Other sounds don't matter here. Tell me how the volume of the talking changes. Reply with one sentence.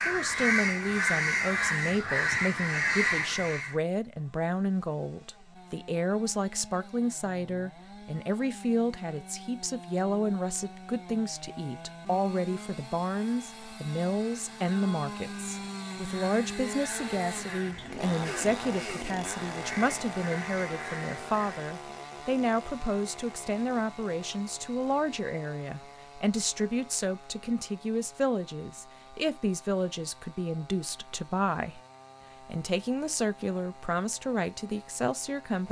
The volume of the talking stays about the same.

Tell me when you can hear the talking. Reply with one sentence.
You can hear the talking from 0.1 to 31.8 s and from 32.5 to 35.6 s.